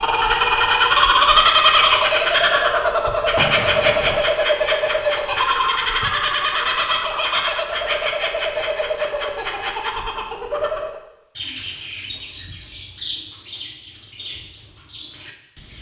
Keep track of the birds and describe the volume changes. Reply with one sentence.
The loudness of the birds goes down.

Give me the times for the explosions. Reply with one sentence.
You can hear the explosions from 3.4 to 4.2 s.